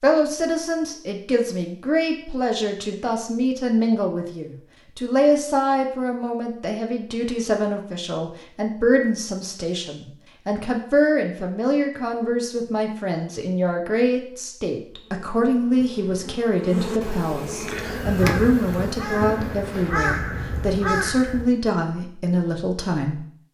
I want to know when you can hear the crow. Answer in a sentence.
You can hear the crow from 17.8 to 21.5 s.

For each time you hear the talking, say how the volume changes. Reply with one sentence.
You can hear the talking from 0.0 to 23.5 s, at a steady volume.